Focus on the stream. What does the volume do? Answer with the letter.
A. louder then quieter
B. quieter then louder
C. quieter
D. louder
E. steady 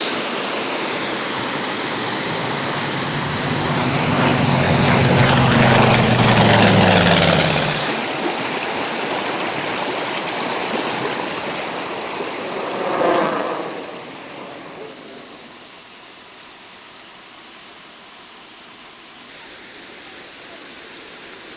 C.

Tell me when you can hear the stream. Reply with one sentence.
The stream can be heard from 0.0 to 21.5 s.